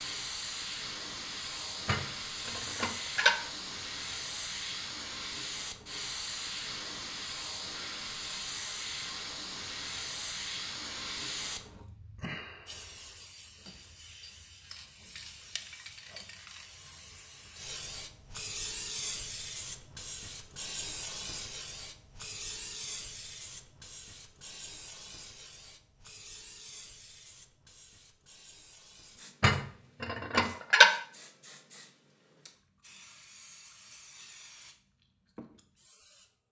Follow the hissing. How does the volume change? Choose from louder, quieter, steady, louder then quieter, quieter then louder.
quieter.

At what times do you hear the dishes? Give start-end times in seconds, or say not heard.
1.9-3.4, 29.4-30.9.